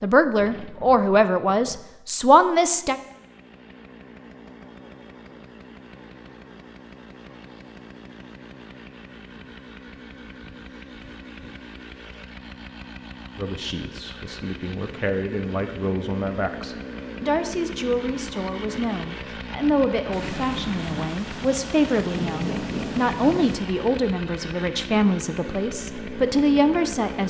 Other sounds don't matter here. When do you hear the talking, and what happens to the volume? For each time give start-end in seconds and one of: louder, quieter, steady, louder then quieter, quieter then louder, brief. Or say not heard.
0.0-3.0 brief
13.3-27.2 louder.